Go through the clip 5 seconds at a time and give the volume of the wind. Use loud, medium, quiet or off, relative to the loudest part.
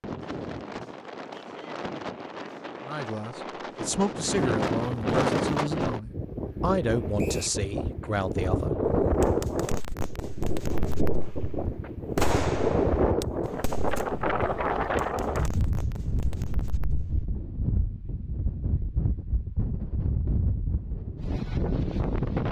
medium, loud, loud, medium, loud.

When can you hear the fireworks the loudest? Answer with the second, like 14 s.
12 s.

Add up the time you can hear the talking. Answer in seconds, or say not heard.
6 s.